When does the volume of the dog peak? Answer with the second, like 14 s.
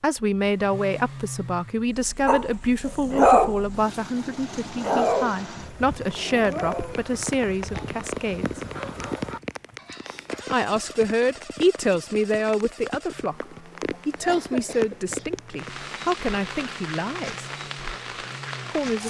3 s.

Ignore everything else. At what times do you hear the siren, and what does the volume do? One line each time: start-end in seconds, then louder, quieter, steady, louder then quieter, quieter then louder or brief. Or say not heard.
not heard.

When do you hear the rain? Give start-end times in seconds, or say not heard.
6.3-19.0.